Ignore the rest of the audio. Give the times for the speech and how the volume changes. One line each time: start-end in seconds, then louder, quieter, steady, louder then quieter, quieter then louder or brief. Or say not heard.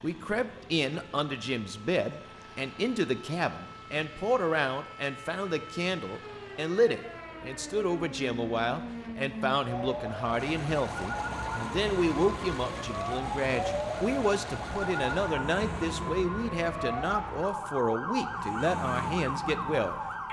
0.0-20.2 steady.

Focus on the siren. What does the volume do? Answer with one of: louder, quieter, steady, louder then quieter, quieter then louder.
louder.